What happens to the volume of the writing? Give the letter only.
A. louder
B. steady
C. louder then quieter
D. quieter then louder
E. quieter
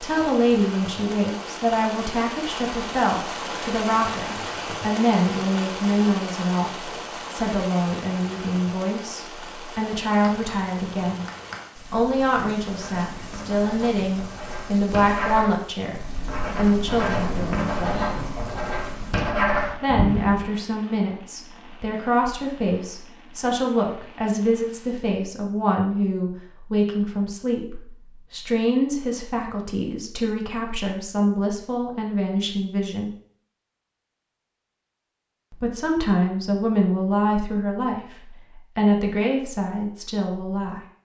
A.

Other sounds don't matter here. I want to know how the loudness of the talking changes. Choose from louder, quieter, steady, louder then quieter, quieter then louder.
steady.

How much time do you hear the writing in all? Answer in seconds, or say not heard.
10 s.